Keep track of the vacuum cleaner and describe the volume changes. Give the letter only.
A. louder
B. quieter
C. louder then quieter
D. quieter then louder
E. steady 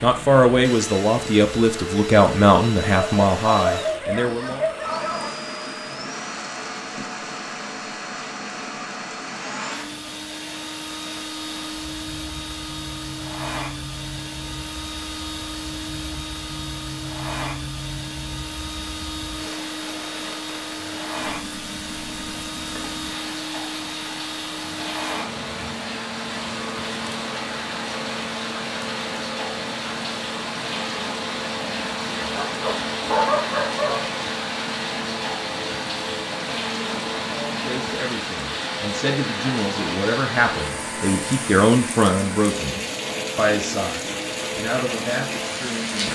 E.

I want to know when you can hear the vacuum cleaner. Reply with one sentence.
You can hear the vacuum cleaner from 0.0 to 46.1 s.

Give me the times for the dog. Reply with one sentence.
The dog can be heard from 2.9 to 5.3 s and from 32.2 to 34.2 s.